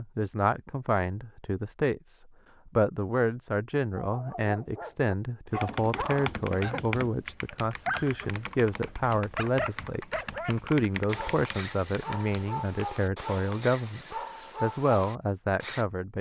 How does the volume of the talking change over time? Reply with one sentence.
The volume of the talking stays about the same.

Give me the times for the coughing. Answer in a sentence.
The coughing can't be heard in this clip.